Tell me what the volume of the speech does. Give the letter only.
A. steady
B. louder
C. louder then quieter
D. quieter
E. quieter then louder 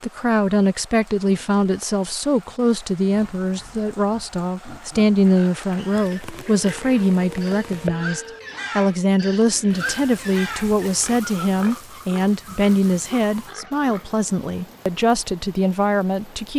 A.